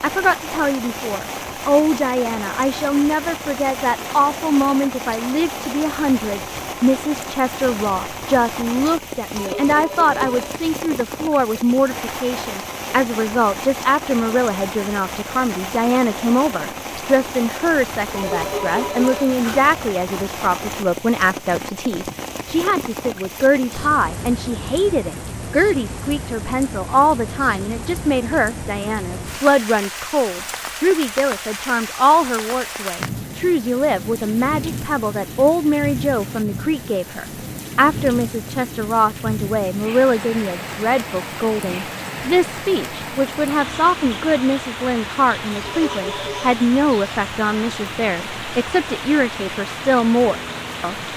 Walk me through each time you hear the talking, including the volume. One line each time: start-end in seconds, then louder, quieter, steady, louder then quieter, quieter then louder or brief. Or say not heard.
0.0-51.0 steady.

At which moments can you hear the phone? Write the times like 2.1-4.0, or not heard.
9.3-10.7, 18.1-19.6, 45.6-46.5.